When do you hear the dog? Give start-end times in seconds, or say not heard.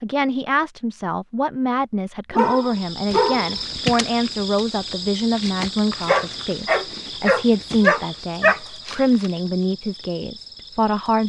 2.3-3.5, 6.0-8.6.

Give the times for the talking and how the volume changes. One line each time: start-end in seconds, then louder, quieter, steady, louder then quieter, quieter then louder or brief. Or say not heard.
0.0-11.2 steady.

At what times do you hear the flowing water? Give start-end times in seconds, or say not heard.
not heard.